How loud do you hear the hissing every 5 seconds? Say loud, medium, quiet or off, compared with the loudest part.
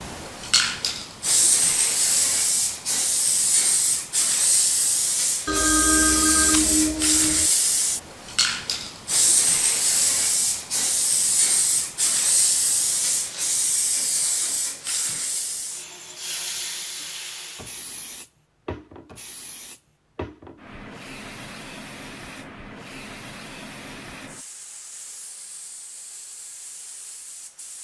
loud, loud, loud, medium, quiet, quiet.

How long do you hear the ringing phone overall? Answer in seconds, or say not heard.
2 s.